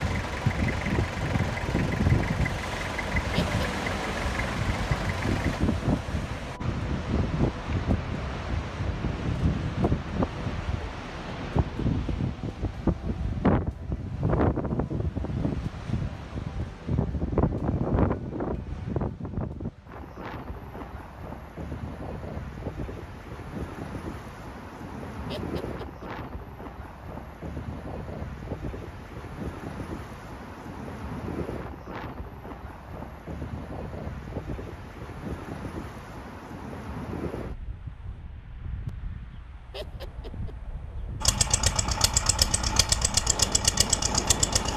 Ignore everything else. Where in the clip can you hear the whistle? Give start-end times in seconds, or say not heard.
not heard.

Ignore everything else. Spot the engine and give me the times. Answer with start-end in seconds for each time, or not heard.
0.0-5.6, 41.2-44.7.